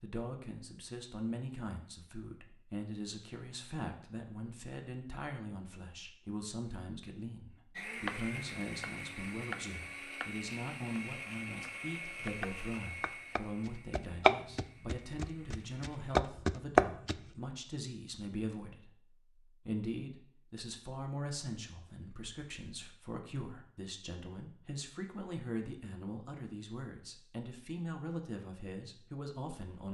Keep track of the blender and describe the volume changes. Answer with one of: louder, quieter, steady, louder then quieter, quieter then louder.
quieter.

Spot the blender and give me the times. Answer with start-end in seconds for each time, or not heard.
7.8-16.2.